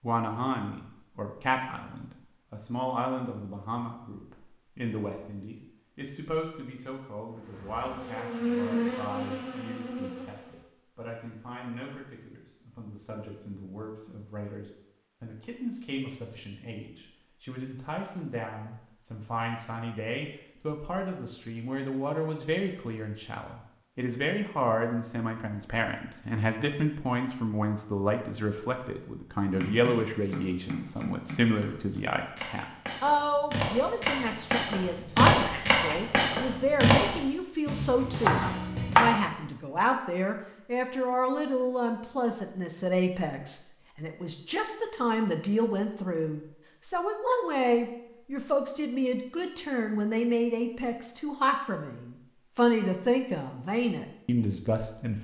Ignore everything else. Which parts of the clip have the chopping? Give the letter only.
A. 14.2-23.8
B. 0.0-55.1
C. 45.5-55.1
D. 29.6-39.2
D.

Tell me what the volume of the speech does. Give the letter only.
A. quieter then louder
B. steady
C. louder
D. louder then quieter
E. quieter
C.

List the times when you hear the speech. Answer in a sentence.
The speech can be heard from 0.0 to 55.1 s.